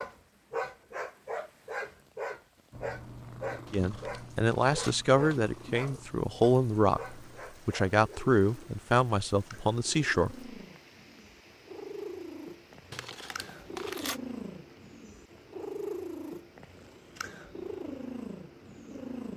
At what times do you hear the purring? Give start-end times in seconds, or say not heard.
2.7-19.3.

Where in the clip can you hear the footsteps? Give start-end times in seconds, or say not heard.
not heard.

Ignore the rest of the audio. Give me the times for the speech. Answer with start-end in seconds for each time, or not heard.
3.7-10.3.